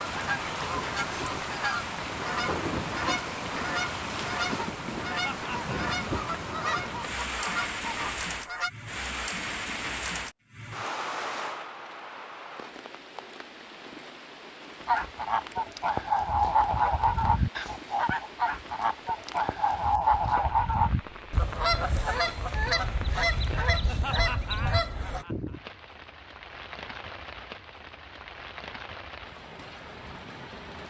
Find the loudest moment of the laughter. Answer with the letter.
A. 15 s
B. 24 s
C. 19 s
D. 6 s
B.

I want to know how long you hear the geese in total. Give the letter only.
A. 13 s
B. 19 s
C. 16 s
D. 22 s
B.